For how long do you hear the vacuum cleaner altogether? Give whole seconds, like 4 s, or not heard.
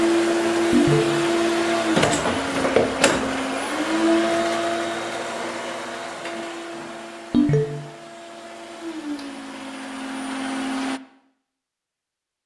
11 s.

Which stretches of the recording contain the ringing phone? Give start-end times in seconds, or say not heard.
0.7-1.1, 7.3-7.8.